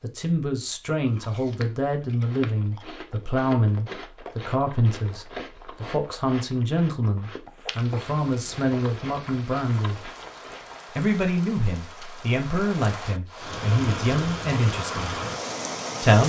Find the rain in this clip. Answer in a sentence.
The rain can be heard from 7.5 to 16.2 s.